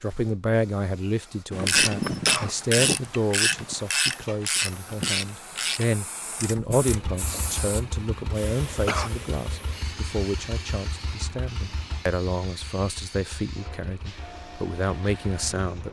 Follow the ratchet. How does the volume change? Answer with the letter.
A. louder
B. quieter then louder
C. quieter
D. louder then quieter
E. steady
C.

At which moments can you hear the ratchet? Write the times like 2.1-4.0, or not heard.
1.5-7.1.